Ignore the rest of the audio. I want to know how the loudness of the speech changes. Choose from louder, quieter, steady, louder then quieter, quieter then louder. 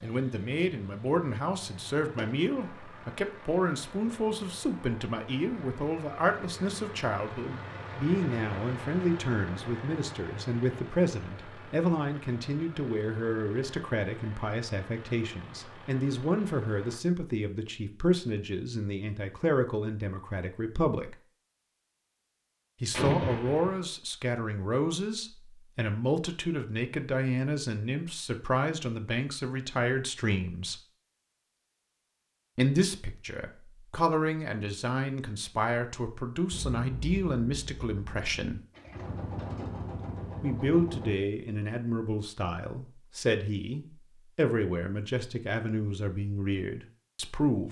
steady.